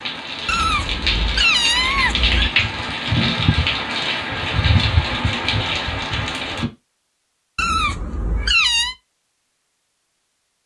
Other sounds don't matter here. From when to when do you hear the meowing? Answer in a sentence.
You can hear the meowing from 0.5 to 2.5 s and from 7.5 to 8.9 s.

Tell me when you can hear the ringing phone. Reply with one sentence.
The ringing phone can't be heard in this clip.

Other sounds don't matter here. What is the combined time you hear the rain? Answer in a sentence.
The rain can be heard for 7 seconds in total.